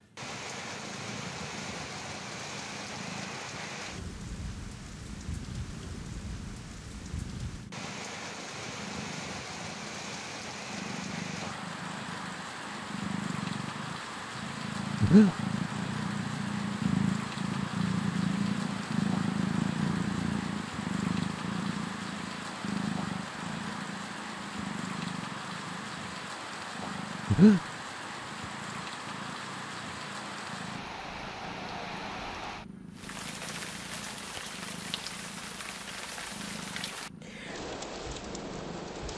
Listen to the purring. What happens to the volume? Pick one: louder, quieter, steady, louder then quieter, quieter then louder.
louder then quieter.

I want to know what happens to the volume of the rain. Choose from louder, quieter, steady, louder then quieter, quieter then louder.
steady.